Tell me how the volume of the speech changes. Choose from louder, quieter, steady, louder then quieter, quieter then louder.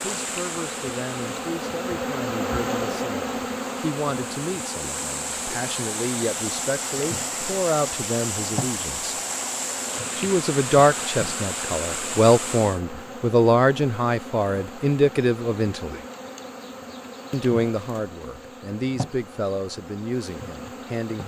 louder then quieter.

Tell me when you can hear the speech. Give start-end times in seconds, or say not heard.
0.0-9.2, 10.2-16.0, 17.3-21.2.